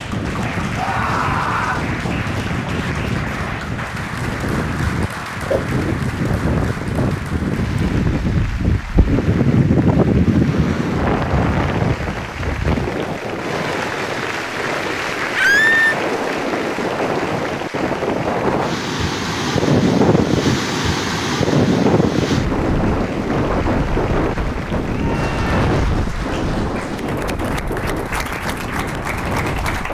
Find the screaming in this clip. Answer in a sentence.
You can hear the screaming from 0.8 to 1.9 s, from 15.3 to 15.9 s and from 24.9 to 25.6 s.